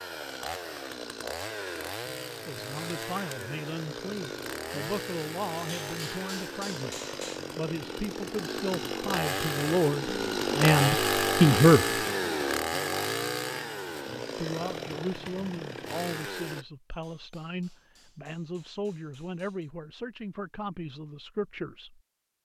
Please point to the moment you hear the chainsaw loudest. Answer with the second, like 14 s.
11 s.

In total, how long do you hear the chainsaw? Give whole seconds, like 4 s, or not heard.
17 s.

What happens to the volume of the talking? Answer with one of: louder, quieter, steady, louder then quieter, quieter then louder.
louder then quieter.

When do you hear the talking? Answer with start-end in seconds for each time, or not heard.
2.5-12.0, 14.3-22.0.